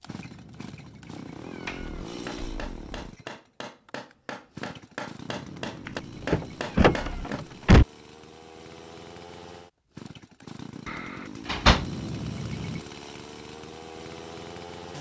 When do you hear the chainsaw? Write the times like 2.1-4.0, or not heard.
0.0-14.9.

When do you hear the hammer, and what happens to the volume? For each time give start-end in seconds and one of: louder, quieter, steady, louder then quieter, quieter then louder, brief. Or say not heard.
2.0-7.4 louder.